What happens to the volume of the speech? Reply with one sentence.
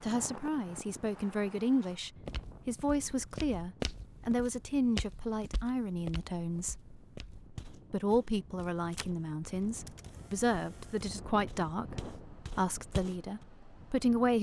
The volume of the speech stays about the same.